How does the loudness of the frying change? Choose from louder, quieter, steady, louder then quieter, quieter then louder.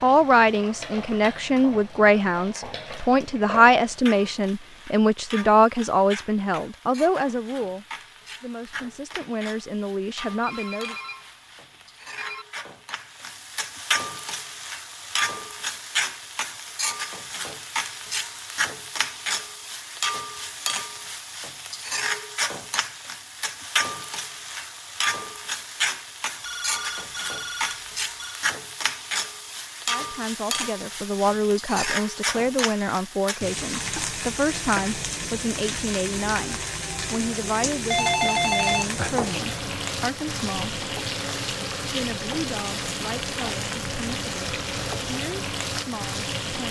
louder.